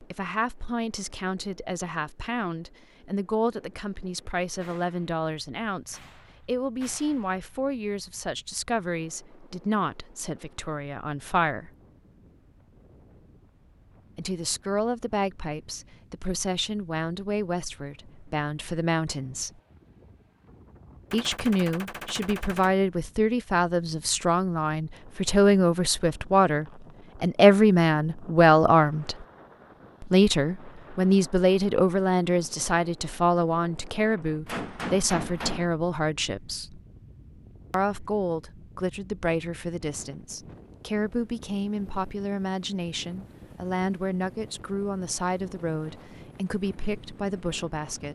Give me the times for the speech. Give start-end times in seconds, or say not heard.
0.0-11.7, 14.2-19.5, 21.1-29.2, 30.0-36.8, 37.7-48.1.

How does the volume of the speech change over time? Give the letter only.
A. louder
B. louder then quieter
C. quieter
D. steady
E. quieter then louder
B.